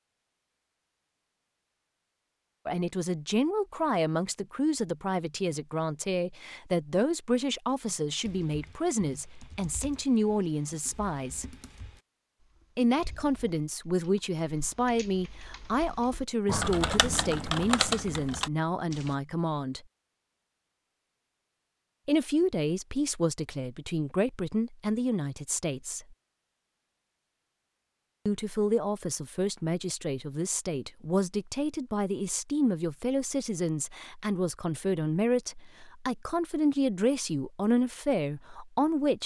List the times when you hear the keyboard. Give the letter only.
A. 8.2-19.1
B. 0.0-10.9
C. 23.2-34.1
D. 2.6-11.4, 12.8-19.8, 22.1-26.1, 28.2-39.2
A.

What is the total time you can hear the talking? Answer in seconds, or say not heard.
31 s.